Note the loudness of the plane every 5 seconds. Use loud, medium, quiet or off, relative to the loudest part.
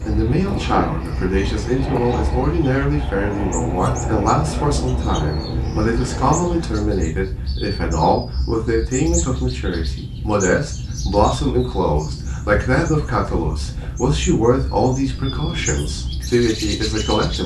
loud, loud, off, off.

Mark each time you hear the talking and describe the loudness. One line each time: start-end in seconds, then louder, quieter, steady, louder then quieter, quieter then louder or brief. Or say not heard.
0.1-17.4 steady.